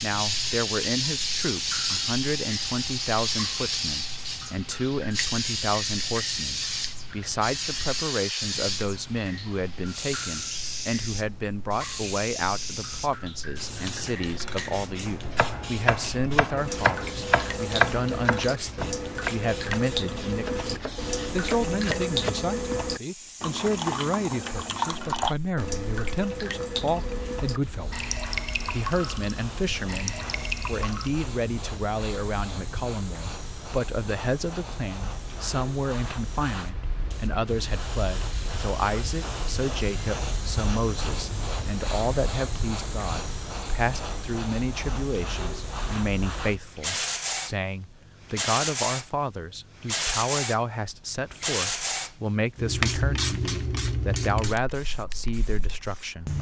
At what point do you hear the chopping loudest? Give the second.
18 s.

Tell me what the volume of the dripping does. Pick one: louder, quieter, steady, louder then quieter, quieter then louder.
louder.